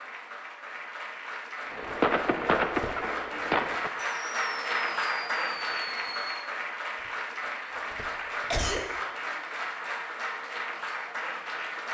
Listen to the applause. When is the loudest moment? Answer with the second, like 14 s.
5 s.